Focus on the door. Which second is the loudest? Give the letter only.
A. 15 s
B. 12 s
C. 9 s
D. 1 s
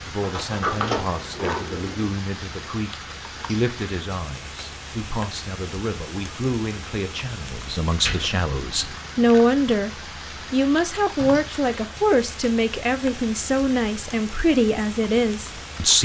D.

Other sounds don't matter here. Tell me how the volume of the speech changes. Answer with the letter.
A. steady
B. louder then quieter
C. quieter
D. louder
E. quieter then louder
D.